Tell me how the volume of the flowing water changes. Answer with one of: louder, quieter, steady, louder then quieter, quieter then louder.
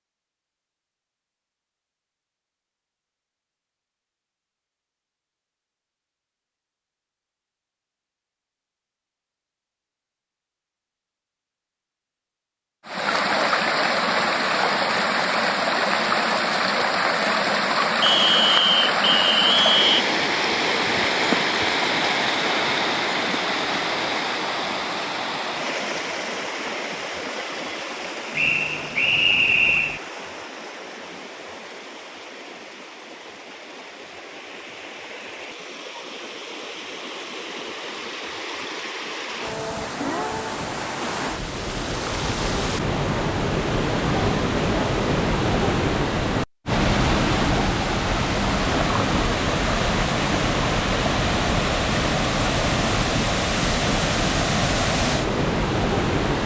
quieter then louder.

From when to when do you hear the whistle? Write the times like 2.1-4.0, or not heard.
18.0-20.1, 28.4-30.0.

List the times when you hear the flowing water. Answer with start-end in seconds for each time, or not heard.
12.8-56.4.